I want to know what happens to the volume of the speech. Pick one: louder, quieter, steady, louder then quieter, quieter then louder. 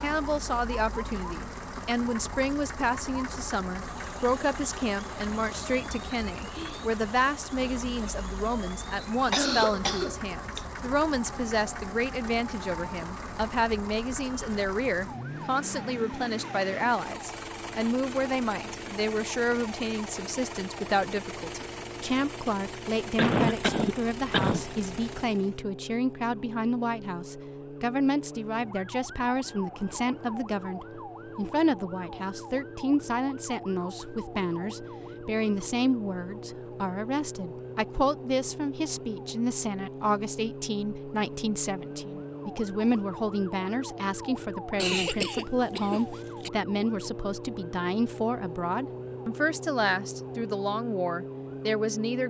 steady.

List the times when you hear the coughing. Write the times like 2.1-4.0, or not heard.
9.3-10.6, 23.1-24.6, 44.8-46.5.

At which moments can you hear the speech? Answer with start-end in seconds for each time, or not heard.
0.0-52.2.